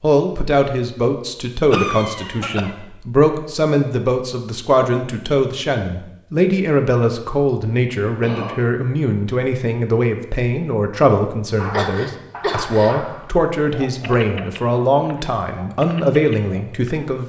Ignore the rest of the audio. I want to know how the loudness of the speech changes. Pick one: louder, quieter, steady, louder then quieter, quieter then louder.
steady.